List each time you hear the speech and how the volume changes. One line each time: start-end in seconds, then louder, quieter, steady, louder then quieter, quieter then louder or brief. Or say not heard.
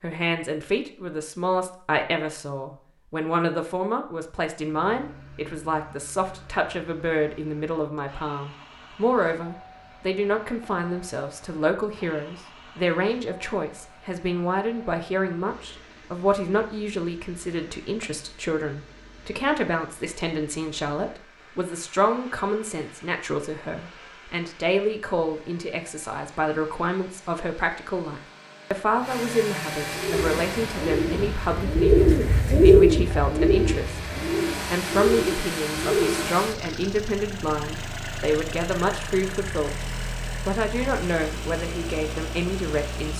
0.0-34.1 steady
34.7-39.9 steady
40.5-43.1 brief.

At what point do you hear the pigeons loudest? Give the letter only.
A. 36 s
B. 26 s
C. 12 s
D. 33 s
D.